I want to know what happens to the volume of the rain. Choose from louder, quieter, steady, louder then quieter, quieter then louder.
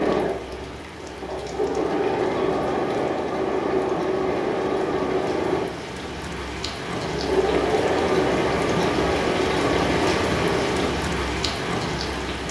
louder.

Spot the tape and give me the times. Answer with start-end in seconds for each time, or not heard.
not heard.